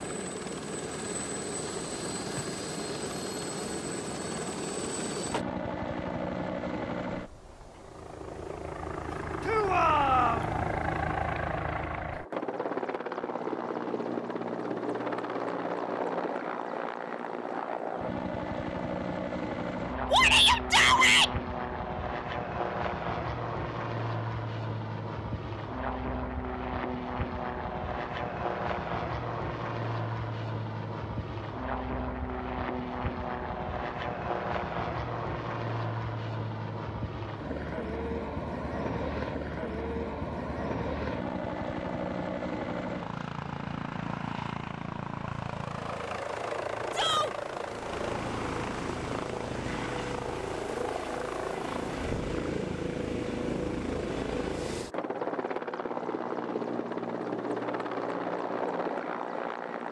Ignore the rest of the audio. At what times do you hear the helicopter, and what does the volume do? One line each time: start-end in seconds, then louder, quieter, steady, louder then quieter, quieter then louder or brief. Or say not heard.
0.0-59.8 steady.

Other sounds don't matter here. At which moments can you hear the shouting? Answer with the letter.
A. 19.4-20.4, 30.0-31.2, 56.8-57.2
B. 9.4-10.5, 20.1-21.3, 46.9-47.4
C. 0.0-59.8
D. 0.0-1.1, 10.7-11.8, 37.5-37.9
B.